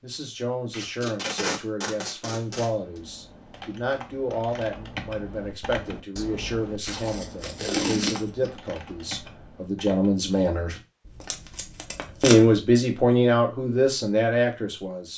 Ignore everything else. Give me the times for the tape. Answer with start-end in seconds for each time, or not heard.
0.7-3.0, 6.8-8.5, 11.1-12.6.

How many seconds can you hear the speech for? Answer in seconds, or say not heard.
14 s.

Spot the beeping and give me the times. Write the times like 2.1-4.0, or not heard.
not heard.